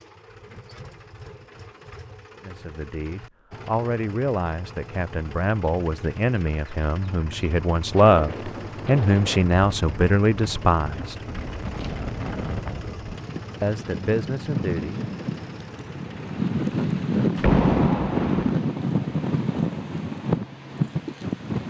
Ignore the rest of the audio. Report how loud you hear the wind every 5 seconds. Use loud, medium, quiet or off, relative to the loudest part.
off, medium, medium, loud, loud.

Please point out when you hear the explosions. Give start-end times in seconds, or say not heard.
17.4-18.6.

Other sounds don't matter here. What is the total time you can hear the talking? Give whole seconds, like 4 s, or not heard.
10 s.